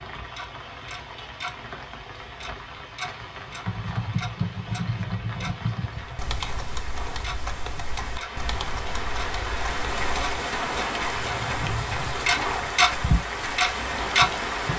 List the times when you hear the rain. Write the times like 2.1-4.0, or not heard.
0.0-14.7.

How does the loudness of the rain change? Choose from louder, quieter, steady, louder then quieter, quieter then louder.
louder.